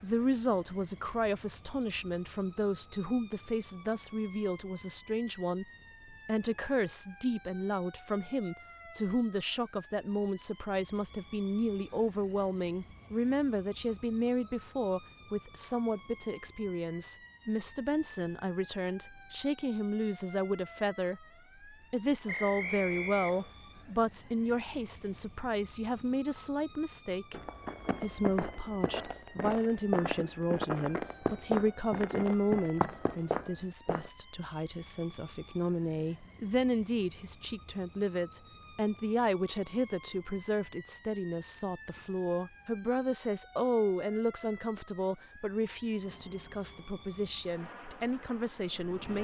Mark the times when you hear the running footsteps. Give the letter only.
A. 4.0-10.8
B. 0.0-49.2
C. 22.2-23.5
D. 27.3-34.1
D.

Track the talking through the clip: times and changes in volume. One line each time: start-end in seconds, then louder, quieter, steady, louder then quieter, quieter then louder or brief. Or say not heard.
0.0-49.2 steady.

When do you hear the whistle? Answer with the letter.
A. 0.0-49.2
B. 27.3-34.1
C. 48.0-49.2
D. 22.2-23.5
D.